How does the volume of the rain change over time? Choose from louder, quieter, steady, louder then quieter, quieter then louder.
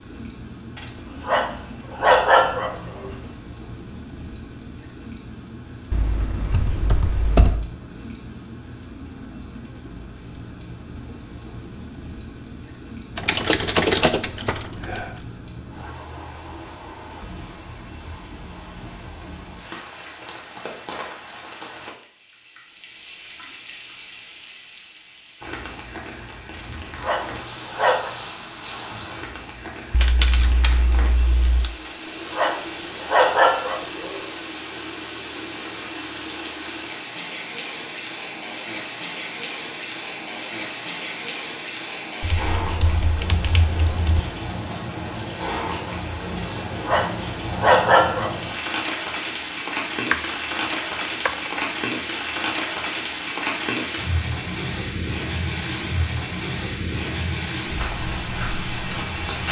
louder.